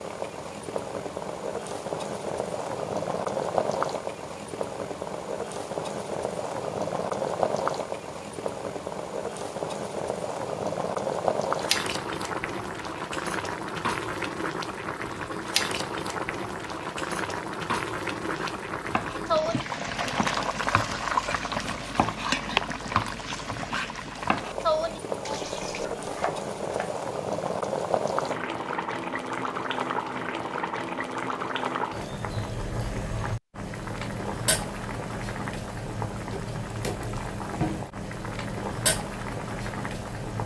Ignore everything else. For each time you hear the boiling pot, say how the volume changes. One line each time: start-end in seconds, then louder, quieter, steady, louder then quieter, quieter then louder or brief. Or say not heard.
0.0-40.4 steady.